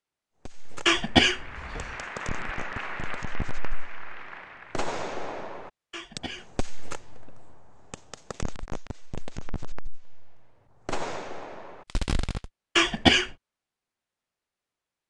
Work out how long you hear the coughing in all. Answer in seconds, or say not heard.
3 s.